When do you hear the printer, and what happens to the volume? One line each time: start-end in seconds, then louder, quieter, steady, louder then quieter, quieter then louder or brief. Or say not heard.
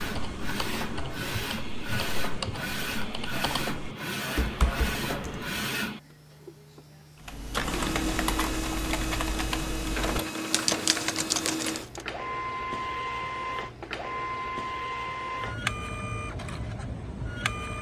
0.0-17.7 steady.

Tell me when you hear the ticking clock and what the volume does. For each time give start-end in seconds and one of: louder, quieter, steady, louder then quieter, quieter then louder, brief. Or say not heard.
not heard.